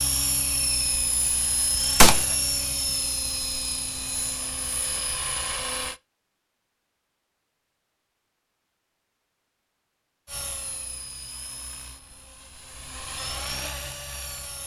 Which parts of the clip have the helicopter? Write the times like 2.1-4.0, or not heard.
0.0-6.0, 10.2-14.6.